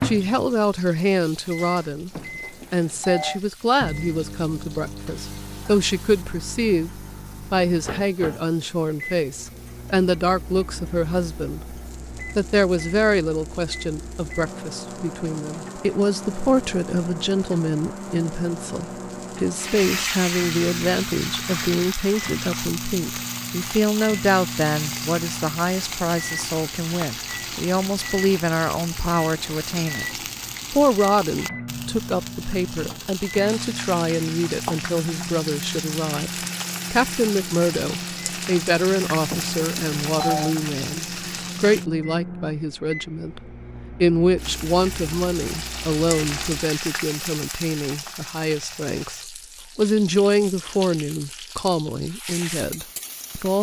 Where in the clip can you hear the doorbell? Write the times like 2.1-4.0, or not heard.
2.1-3.4, 39.2-40.5.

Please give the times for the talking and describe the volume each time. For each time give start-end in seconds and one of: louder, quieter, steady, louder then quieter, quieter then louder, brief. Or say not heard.
0.0-2.1 brief
2.7-53.5 steady.